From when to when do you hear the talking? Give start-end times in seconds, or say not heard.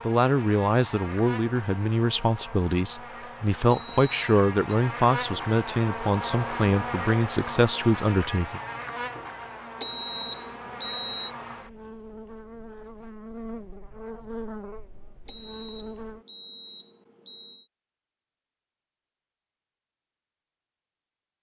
0.1-8.6.